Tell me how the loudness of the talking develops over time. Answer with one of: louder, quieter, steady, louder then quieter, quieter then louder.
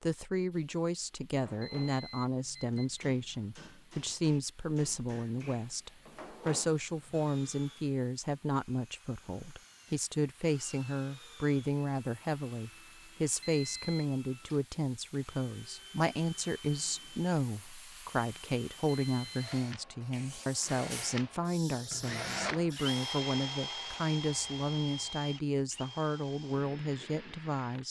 steady.